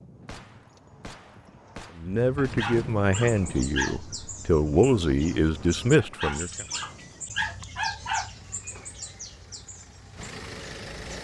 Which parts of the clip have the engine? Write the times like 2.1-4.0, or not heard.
8.2-11.1.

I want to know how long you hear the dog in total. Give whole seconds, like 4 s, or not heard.
4 s.